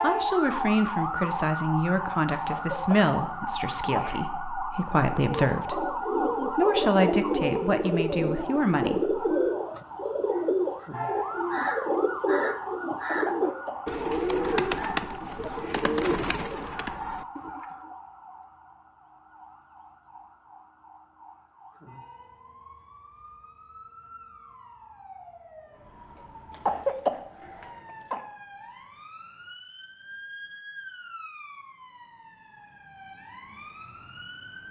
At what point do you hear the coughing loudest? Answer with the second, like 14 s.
27 s.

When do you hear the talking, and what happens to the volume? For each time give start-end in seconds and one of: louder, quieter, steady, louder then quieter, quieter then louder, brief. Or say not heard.
0.0-9.3 steady.